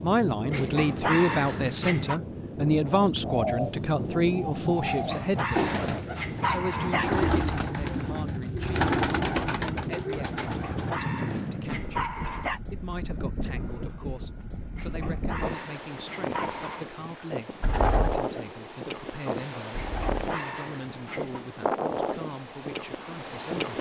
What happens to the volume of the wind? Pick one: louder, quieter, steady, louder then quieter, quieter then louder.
steady.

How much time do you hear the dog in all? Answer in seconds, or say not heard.
10 s.